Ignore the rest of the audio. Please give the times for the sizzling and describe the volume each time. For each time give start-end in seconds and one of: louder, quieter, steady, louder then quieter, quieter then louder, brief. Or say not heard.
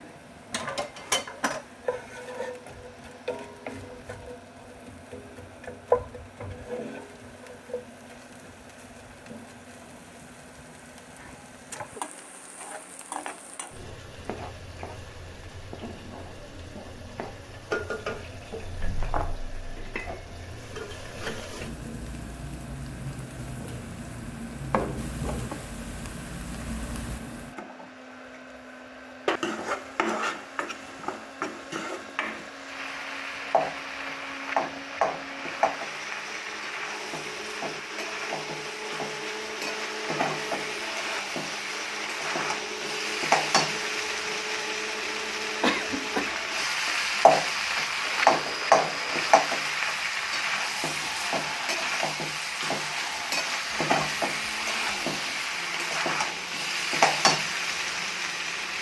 0.0-58.7 louder.